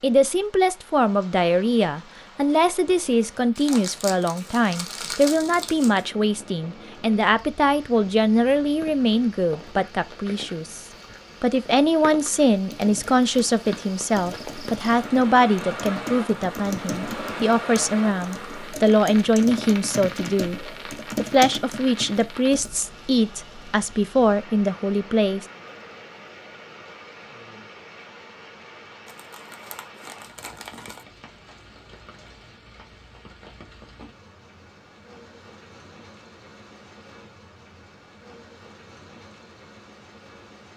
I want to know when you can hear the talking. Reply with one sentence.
The talking can be heard from 0.0 to 25.4 s.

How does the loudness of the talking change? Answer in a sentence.
The loudness of the talking stays about the same.